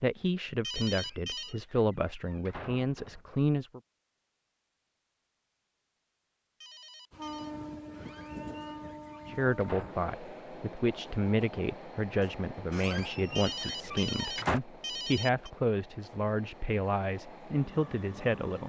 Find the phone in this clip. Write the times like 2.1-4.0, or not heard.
0.6-1.6, 6.6-7.5, 13.3-15.5.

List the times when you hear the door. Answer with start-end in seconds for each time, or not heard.
0.8-3.2, 7.9-10.2, 12.7-14.6.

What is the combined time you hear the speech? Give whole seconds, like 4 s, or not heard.
13 s.